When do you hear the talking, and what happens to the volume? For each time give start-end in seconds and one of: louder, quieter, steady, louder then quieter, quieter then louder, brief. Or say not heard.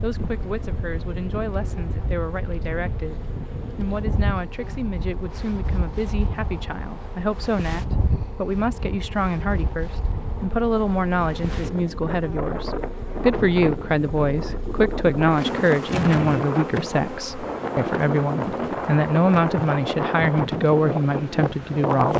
0.0-22.1 louder.